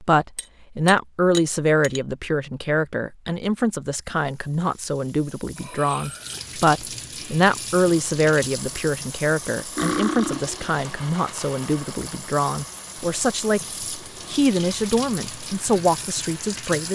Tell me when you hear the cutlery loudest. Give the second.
10 s.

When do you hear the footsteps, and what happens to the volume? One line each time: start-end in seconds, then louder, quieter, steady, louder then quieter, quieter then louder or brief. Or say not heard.
not heard.